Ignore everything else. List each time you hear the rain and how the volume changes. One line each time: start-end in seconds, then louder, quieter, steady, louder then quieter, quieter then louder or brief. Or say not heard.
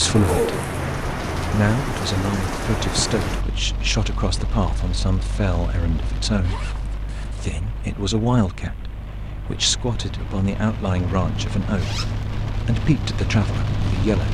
0.0-14.2 quieter then louder.